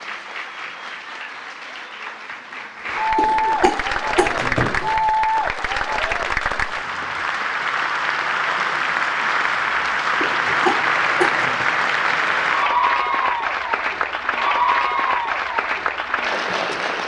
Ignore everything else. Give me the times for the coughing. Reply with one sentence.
You can hear the coughing from 3.1 to 5.0 s and from 10.2 to 11.7 s.